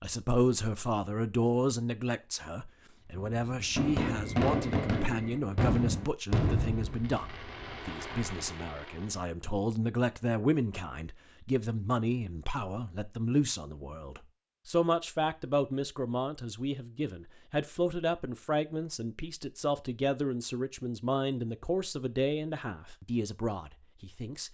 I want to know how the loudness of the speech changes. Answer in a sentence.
The loudness of the speech stays about the same.